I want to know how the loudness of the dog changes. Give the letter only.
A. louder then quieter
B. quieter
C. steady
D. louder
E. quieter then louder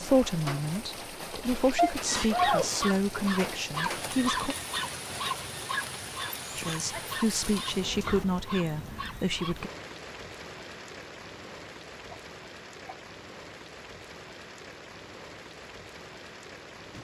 B.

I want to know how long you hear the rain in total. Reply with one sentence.
You can hear the rain for 17 seconds altogether.